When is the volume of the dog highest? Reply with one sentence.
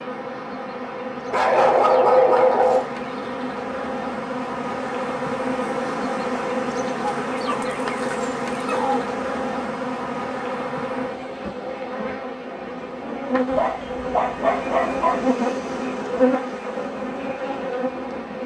The volume of the dog peaks at 2 seconds.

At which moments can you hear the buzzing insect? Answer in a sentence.
You can hear the buzzing insect from 0.0 to 18.4 s.